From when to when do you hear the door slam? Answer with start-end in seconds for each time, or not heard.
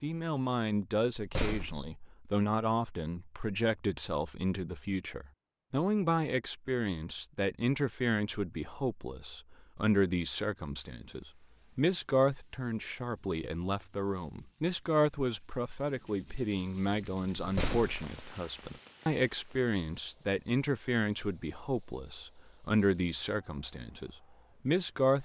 1.1-1.9, 17.4-18.1.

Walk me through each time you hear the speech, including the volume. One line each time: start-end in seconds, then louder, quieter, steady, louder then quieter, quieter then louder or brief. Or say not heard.
0.0-25.2 steady.